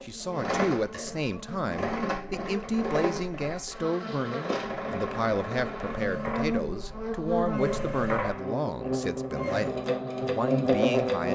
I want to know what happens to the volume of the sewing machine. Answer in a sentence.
The volume of the sewing machine stays about the same.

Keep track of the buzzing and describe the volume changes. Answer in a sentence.
The loudness of the buzzing goes up.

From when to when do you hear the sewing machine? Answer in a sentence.
The sewing machine can be heard from 0.0 to 11.2 s.